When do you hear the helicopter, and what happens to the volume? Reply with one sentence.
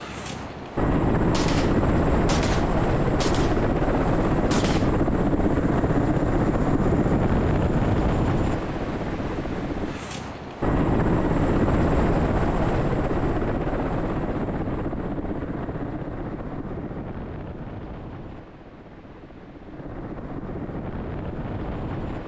The helicopter can be heard from 0.0 to 22.2 s, getting quieter.